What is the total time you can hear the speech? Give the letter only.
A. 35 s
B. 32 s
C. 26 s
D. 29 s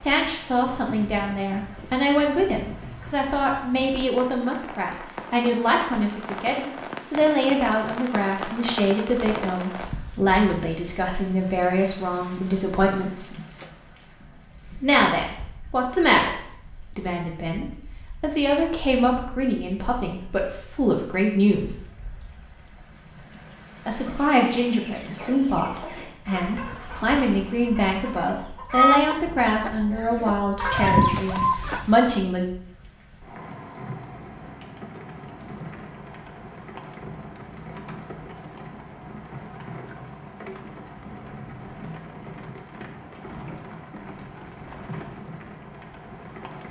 D.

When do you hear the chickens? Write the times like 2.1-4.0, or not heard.
23.9-32.1.